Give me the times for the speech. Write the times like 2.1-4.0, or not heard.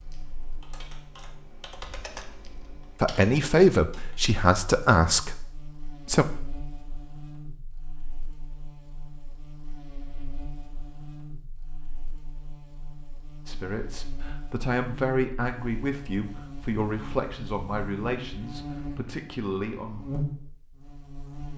3.0-6.2, 13.4-20.1.